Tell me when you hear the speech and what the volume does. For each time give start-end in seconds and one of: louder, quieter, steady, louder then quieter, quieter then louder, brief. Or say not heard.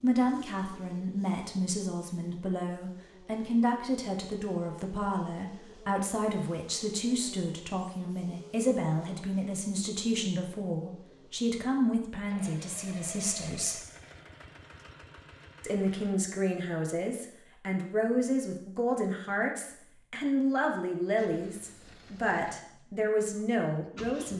0.0-13.8 steady
15.6-24.3 steady.